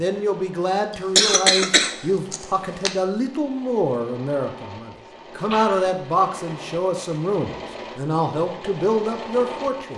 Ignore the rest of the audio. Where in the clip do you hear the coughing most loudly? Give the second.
1 s.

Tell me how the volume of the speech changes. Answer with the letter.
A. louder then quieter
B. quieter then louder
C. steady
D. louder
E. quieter
C.